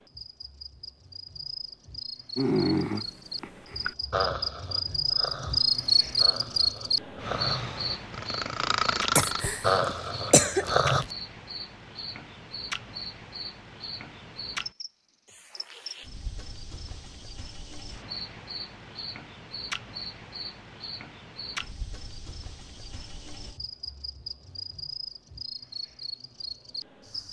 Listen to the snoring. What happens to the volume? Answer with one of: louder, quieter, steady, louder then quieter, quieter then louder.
quieter then louder.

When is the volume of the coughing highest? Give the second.
10 s.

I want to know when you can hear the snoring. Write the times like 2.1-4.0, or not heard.
2.4-11.1.